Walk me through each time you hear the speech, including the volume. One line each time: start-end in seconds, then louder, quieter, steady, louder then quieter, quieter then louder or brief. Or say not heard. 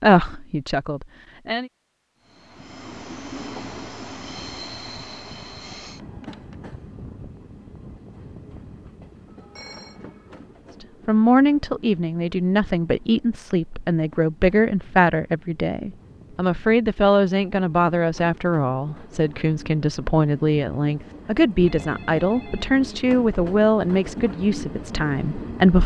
0.0-1.7 brief
10.8-25.8 steady.